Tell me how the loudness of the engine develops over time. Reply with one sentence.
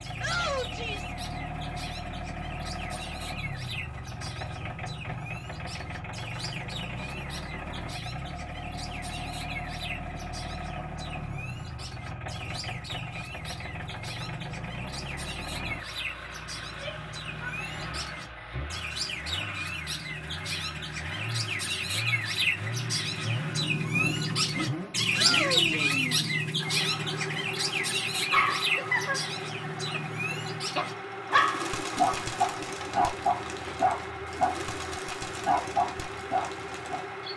The loudness of the engine stays about the same.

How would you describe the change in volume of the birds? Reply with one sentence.
The loudness of the birds goes up, then down.